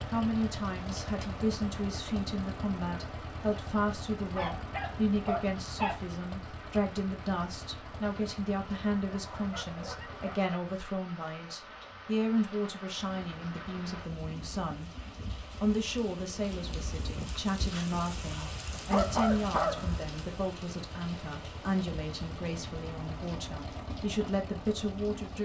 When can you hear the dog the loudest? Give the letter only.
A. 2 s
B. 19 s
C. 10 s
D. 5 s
B.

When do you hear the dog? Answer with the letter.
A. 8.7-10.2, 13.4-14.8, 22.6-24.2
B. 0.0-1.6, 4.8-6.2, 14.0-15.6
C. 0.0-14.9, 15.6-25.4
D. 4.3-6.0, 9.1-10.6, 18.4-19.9
D.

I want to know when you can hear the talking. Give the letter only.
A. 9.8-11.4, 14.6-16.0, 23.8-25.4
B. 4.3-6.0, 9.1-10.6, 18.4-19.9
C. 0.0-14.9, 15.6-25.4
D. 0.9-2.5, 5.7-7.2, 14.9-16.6
C.